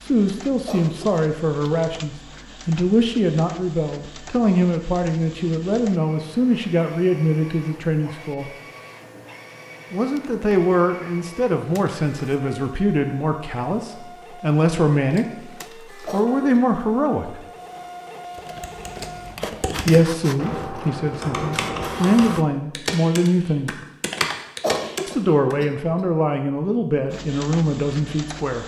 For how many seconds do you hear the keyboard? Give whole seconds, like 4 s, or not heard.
7 s.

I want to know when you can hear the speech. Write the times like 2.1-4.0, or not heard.
0.0-8.5, 9.9-17.4, 19.9-23.8, 25.1-28.6.